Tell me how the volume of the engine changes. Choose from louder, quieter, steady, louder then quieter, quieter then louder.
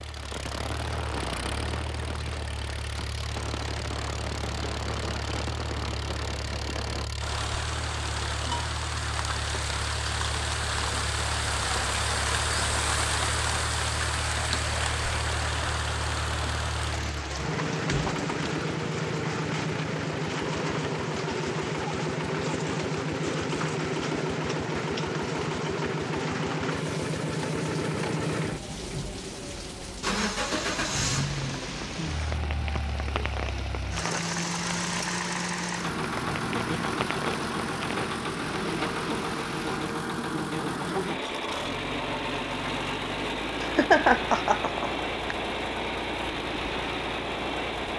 louder.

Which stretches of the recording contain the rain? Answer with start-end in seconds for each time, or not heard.
0.0-39.9.